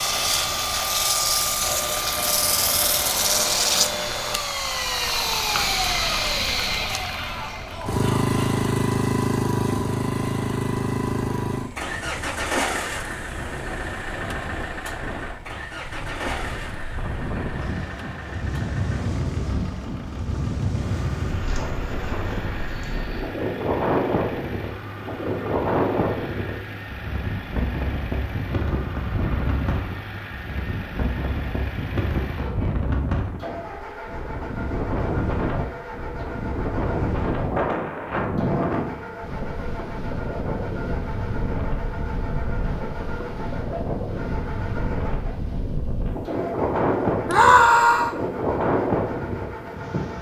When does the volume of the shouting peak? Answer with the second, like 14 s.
48 s.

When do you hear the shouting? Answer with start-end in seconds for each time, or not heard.
7.2-8.3, 47.2-48.1.